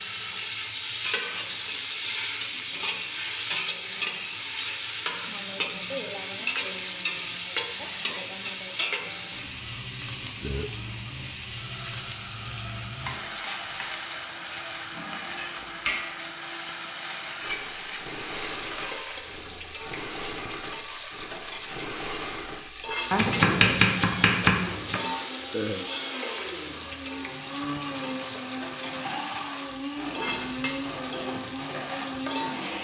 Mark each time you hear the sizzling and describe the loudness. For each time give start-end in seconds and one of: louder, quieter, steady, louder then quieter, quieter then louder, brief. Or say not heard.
0.0-32.7 steady.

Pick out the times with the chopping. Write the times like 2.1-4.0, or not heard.
23.1-25.0.